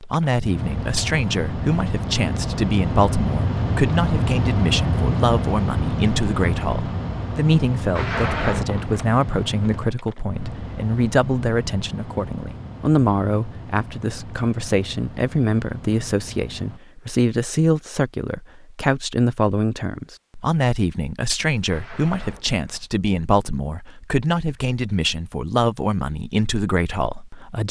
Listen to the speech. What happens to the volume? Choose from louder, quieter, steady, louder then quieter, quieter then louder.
steady.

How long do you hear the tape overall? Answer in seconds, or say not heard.
2 s.